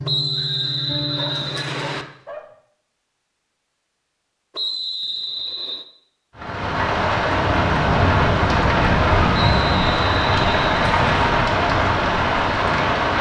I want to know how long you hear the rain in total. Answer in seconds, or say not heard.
7 s.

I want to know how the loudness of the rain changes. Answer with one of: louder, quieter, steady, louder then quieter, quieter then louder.
steady.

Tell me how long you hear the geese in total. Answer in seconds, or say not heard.
2 s.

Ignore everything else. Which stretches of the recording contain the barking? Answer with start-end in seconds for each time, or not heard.
1.1-2.5.